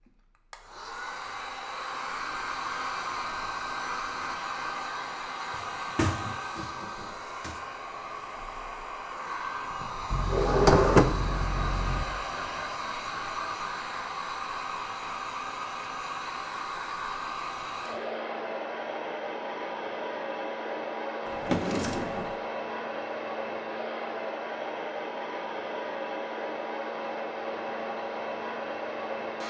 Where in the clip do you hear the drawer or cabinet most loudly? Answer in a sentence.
The loudest moment of the drawer or cabinet is at 11 seconds.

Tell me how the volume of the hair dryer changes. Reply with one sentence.
The loudness of the hair dryer stays about the same.